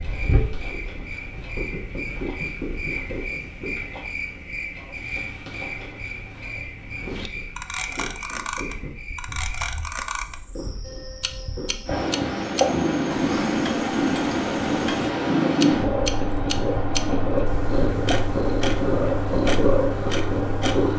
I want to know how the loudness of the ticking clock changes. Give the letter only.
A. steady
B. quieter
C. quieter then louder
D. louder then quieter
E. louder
E.